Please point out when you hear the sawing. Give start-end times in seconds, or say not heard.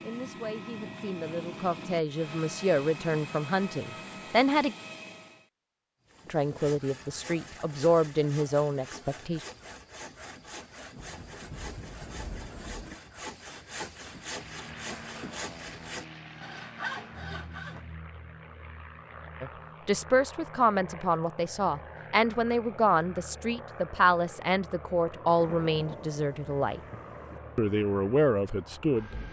6.0-17.9.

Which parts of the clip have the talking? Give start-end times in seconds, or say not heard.
0.0-4.8, 6.2-9.4, 19.4-26.8, 27.6-29.1.